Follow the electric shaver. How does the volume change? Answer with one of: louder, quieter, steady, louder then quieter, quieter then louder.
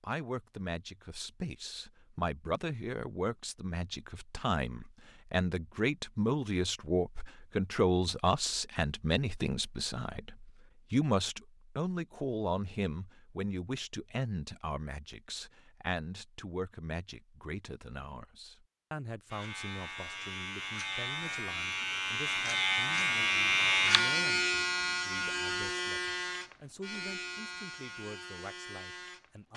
louder then quieter.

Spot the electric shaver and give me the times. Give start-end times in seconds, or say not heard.
19.3-29.5.